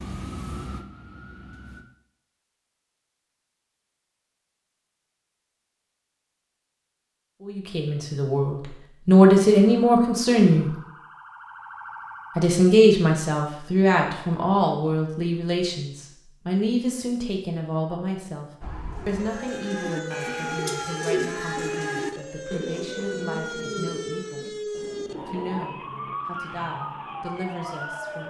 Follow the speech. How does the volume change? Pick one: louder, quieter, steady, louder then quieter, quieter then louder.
quieter.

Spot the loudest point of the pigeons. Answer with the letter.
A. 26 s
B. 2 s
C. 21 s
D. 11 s
C.